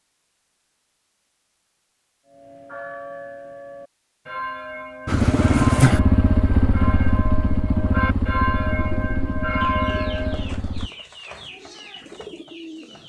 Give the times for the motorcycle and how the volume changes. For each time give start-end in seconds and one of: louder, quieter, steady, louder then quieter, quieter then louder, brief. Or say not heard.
5.0-10.9 quieter.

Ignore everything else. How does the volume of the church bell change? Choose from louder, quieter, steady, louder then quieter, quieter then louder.
louder.